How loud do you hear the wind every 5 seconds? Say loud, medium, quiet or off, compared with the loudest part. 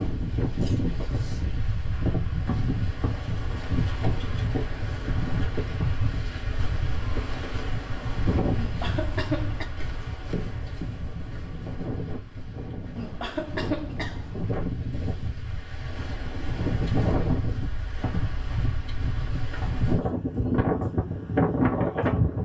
medium, medium, medium, medium, loud.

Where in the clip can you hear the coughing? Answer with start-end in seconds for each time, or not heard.
8.6-9.7, 12.9-14.3.